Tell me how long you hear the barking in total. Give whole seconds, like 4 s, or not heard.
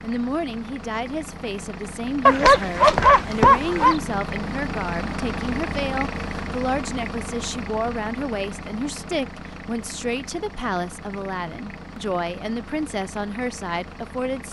2 s.